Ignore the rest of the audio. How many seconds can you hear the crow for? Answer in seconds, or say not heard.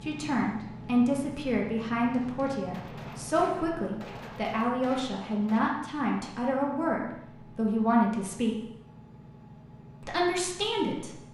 not heard.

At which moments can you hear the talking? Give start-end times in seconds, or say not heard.
0.0-8.6, 10.0-11.2.